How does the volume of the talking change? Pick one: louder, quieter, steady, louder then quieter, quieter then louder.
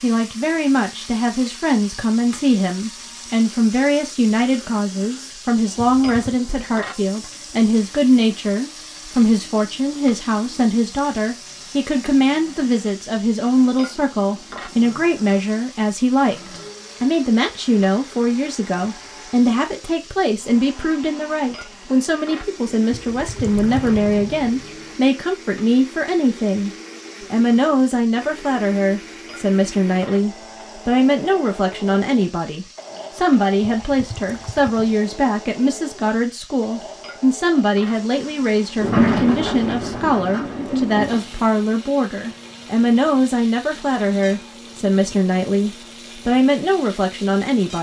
steady.